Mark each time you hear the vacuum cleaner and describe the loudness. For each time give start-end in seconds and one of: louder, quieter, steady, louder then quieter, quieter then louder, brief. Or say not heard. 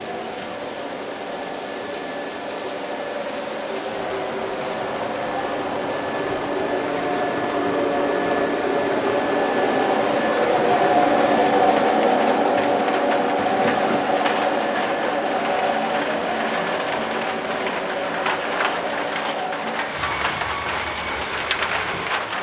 0.0-22.3 louder then quieter.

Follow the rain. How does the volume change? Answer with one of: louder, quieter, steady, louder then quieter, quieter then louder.
louder.